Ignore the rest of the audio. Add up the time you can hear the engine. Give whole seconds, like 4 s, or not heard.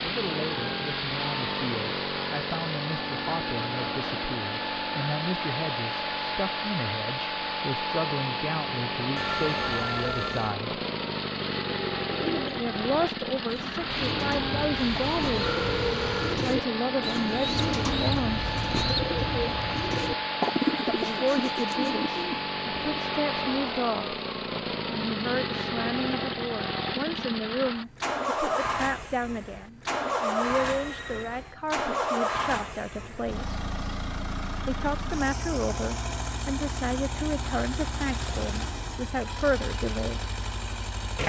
41 s.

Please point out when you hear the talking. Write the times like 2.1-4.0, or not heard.
0.0-10.8, 12.6-15.4, 16.3-18.5, 20.9-24.2, 24.9-33.6, 34.6-40.2.